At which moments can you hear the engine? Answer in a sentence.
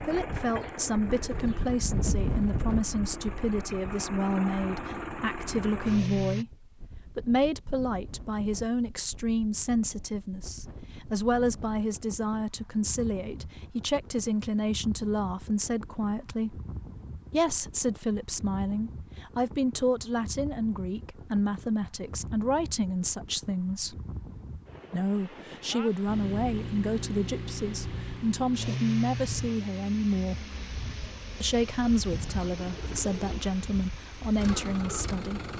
You can hear the engine from 0.0 to 6.5 s and from 26.1 to 35.5 s.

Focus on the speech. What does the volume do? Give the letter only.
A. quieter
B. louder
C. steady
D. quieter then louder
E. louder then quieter
C.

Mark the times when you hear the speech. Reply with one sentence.
You can hear the speech from 0.0 to 16.6 s, from 17.3 to 23.9 s, from 24.9 to 30.4 s and from 31.4 to 35.5 s.